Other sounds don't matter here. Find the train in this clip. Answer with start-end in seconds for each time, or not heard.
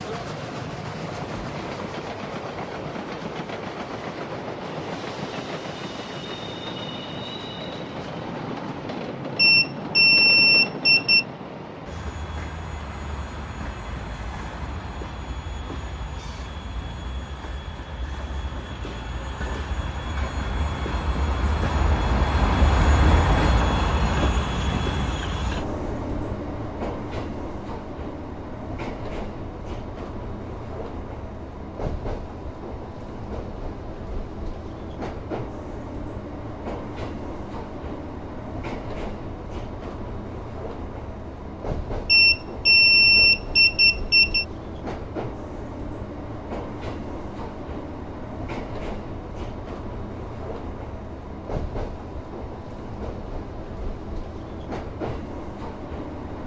0.0-56.4.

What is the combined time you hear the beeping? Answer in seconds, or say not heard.
4 s.